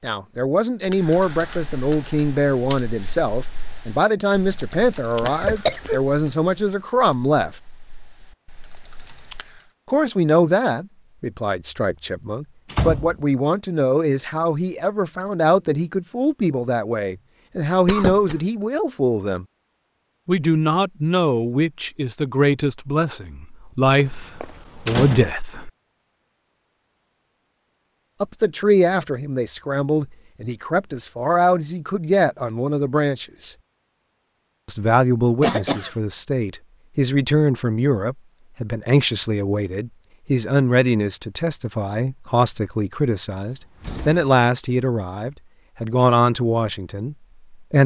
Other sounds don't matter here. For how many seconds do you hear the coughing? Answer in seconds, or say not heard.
2 s.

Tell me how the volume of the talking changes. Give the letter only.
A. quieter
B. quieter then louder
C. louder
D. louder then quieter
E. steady
E.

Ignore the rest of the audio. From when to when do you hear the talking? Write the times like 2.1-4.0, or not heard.
0.0-7.5, 9.8-19.4, 20.2-25.7, 28.2-33.5, 34.6-47.8.